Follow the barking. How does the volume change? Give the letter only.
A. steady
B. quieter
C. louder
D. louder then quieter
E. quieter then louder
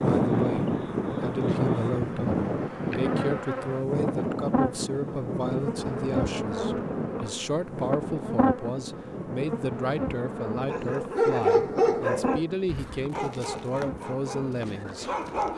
B.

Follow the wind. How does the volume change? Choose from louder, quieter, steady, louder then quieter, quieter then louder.
quieter.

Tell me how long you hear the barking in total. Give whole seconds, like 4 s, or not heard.
5 s.